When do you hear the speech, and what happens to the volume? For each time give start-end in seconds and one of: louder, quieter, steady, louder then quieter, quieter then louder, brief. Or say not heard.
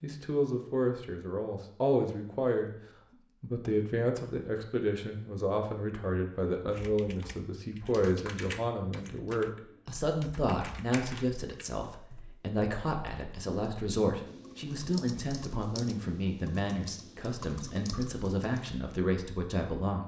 0.0-2.7 brief
3.4-20.0 steady.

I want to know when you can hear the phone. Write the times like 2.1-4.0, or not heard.
not heard.